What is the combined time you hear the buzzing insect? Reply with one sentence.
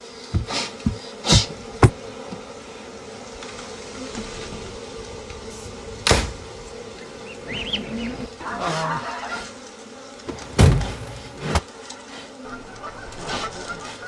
The buzzing insect can be heard for 14 seconds in total.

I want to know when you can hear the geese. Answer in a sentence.
The geese can be heard from 7.0 to 9.4 s and from 11.7 to 14.0 s.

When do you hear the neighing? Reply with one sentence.
You can hear the neighing from 4.1 to 4.8 s.